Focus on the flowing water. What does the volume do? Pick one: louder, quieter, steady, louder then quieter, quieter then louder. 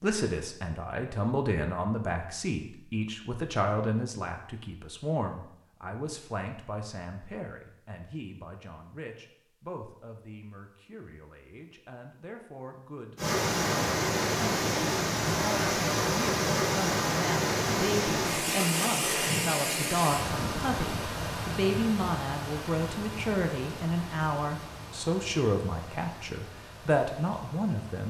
quieter.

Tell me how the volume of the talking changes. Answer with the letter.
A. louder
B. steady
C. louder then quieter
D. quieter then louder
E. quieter
D.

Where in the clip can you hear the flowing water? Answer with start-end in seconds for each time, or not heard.
13.2-28.0.